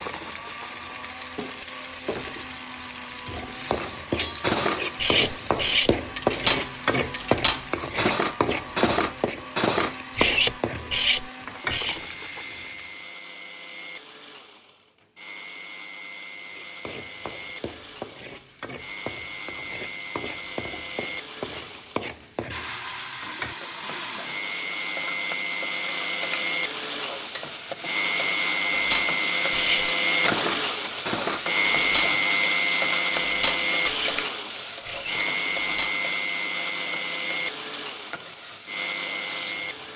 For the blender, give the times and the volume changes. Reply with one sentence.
You can hear the blender from 0.0 to 39.9 s, getting louder.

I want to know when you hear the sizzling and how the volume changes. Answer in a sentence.
The sizzling can be heard from 0.0 to 13.1 s, getting louder then quieter; and from 16.4 to 39.9 s, getting louder then quieter.